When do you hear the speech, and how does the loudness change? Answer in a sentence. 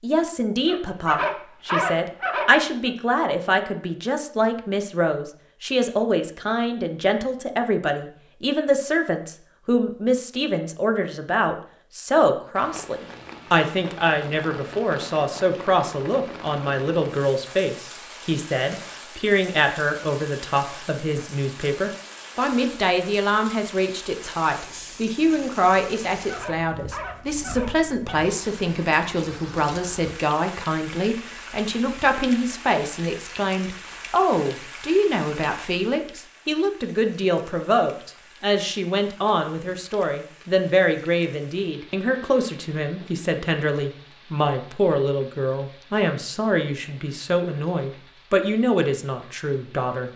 The speech can be heard from 0.0 to 50.1 s, at a steady volume.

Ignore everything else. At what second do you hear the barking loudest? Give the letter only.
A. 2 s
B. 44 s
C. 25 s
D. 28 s
A.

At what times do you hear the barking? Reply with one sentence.
The barking can be heard from 0.7 to 2.9 s and from 25.9 to 28.2 s.